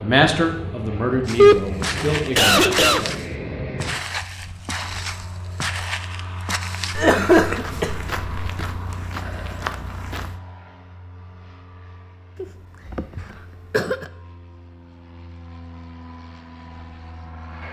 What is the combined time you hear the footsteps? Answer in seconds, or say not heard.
9 s.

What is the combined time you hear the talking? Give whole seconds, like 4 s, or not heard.
3 s.